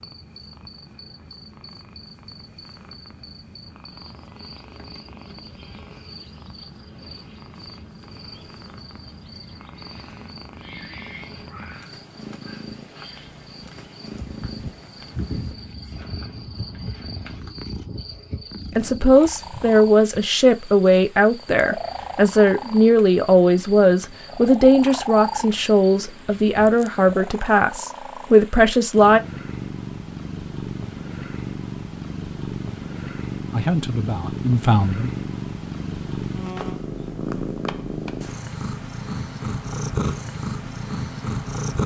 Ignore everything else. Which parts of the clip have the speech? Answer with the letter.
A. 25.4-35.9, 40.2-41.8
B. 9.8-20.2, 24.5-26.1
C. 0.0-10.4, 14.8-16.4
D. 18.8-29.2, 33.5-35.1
D.